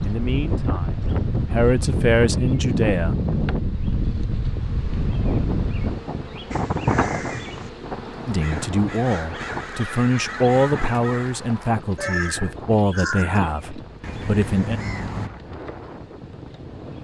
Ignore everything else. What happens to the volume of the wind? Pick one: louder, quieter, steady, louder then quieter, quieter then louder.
quieter.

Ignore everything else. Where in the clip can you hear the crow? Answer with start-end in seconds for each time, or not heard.
6.5-15.3.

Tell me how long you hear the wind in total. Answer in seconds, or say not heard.
17 s.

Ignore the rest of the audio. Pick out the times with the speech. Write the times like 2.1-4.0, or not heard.
0.0-3.1, 8.2-14.8.